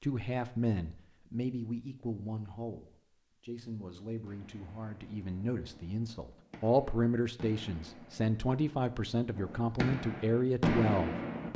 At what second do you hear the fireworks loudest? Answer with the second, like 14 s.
11 s.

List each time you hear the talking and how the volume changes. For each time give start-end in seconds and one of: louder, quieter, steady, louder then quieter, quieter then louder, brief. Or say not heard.
0.0-11.5 quieter then louder.